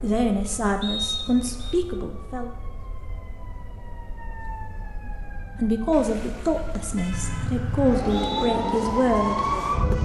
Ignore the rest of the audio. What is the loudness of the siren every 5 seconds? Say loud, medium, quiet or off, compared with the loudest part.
quiet, loud.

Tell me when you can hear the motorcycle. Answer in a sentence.
You can hear the motorcycle from 7.1 to 10.0 s.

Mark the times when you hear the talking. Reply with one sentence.
You can hear the talking from 0.0 to 2.5 s and from 5.5 to 9.9 s.